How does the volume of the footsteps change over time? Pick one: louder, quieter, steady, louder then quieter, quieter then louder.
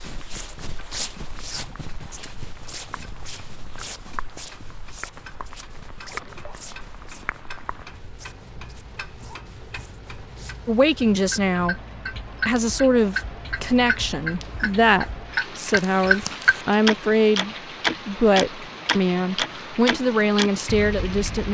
quieter.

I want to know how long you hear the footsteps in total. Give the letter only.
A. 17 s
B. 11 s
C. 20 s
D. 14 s
B.